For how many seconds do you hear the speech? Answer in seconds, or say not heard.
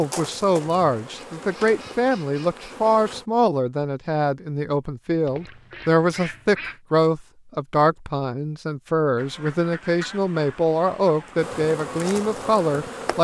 13 s.